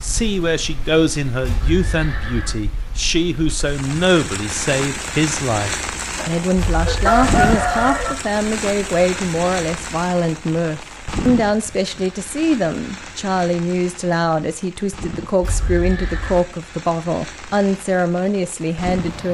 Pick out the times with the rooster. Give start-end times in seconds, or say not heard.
6.2-8.2.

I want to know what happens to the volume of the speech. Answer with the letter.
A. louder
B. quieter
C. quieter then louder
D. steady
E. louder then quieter
D.